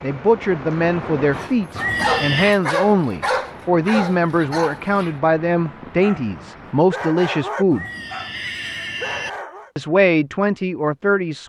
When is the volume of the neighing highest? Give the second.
2 s.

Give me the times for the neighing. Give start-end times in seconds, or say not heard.
1.7-2.6, 7.7-9.3.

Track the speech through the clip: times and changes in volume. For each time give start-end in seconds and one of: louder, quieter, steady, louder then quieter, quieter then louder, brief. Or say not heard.
0.0-7.8 steady
9.8-11.4 brief.